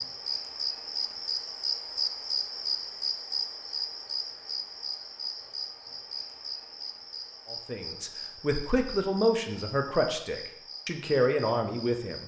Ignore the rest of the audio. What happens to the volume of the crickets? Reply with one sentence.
The volume of the crickets goes down.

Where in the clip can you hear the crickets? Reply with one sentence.
The crickets can be heard from 0.0 to 12.2 s.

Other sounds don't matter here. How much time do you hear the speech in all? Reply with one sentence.
The speech can be heard for 5 seconds in total.